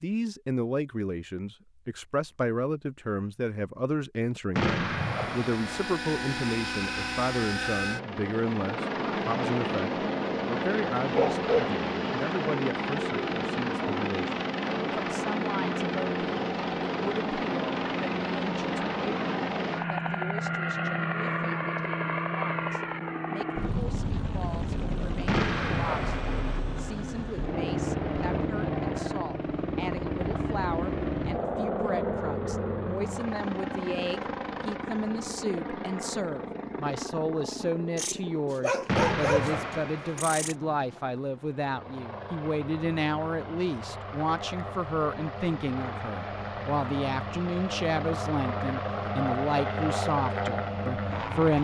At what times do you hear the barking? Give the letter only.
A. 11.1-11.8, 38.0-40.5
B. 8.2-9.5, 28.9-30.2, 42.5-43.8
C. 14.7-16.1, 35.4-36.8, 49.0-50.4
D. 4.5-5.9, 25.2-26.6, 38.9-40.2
A.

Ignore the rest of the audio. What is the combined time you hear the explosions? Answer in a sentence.
The explosions can be heard for 4 seconds in total.